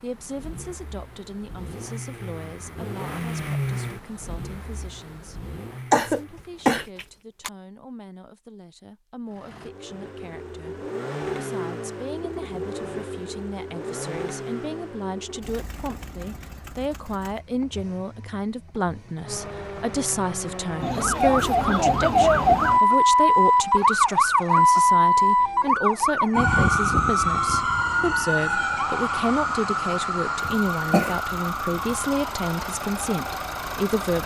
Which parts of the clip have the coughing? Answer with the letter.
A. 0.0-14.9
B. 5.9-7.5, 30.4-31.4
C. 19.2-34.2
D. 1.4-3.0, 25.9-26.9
B.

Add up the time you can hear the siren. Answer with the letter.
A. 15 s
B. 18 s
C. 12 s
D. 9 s
A.